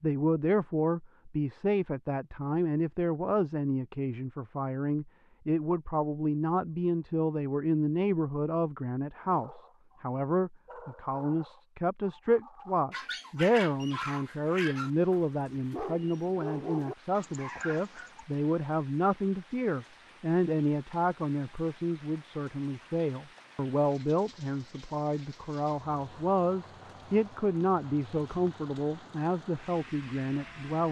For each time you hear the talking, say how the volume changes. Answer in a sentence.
You can hear the talking from 0.0 to 30.8 s, at a steady volume.